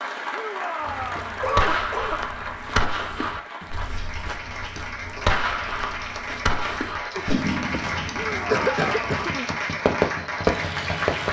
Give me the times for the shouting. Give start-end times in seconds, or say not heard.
0.3-1.4, 8.1-8.9.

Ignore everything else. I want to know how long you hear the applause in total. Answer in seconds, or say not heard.
11 s.